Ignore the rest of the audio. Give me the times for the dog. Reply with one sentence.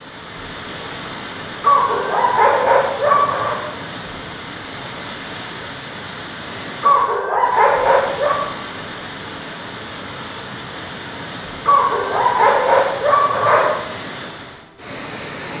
You can hear the dog from 1.6 to 3.5 s, from 6.8 to 8.4 s and from 11.7 to 13.7 s.